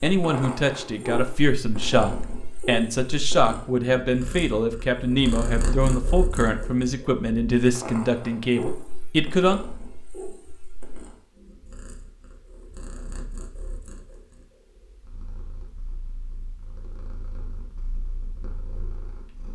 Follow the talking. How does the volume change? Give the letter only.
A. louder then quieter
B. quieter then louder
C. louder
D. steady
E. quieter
D.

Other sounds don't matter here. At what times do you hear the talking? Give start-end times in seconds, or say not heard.
0.0-9.6.